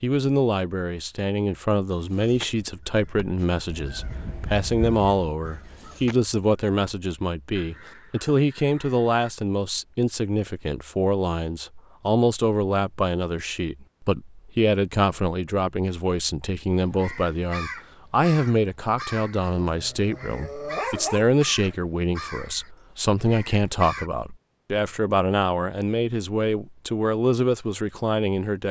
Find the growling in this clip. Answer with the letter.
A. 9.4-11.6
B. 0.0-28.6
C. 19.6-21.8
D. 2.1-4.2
C.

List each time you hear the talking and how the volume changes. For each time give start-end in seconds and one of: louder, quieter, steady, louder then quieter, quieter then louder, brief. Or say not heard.
0.0-28.6 steady.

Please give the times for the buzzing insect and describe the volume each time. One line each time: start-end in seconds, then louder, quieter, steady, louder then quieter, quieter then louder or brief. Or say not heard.
not heard.